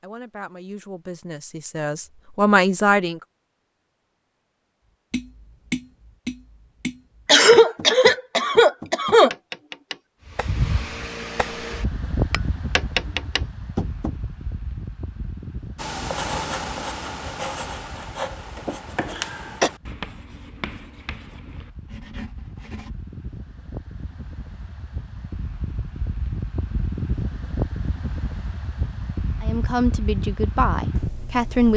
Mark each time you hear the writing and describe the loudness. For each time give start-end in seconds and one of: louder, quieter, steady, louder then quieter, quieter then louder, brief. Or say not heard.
15.8-22.9 quieter.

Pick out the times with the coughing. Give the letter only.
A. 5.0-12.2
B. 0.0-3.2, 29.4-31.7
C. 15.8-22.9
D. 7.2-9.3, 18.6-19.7
D.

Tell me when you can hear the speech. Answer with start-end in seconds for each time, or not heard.
0.0-3.2, 29.4-31.7.